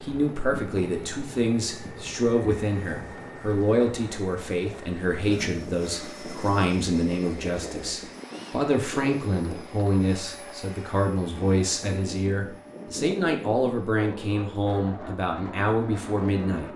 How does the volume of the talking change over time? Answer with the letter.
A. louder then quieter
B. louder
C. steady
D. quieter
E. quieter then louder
C.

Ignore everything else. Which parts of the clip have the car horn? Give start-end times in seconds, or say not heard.
not heard.